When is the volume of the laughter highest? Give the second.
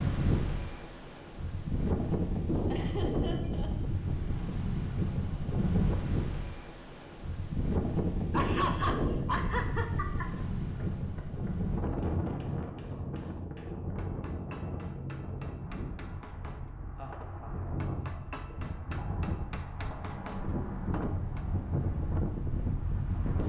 9 s.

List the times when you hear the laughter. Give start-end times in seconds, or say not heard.
2.6-3.7, 8.3-10.3, 16.9-18.4.